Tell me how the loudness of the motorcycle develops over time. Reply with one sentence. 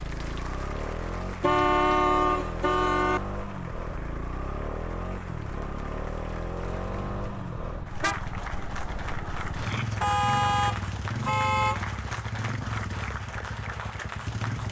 The loudness of the motorcycle stays about the same.